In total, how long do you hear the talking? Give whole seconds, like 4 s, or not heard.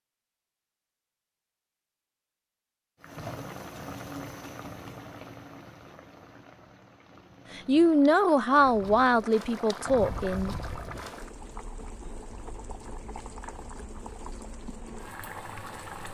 3 s.